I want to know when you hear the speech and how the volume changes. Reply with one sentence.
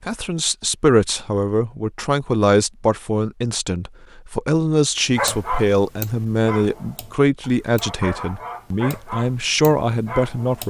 The speech can be heard from 0.1 to 10.6 s, at a steady volume.